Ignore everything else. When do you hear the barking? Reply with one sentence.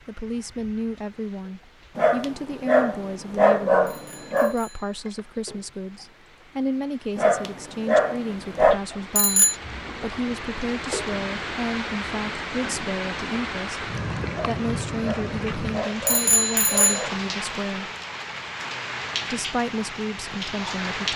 You can hear the barking from 1.9 to 4.5 s, from 7.2 to 8.8 s and from 14.3 to 17.2 s.